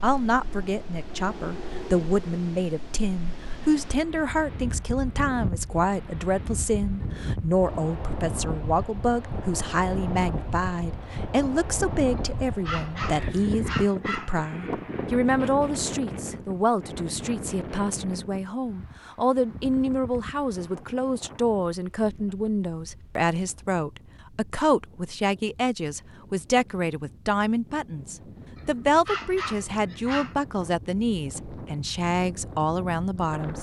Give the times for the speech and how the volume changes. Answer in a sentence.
You can hear the speech from 0.0 to 33.5 s, at a steady volume.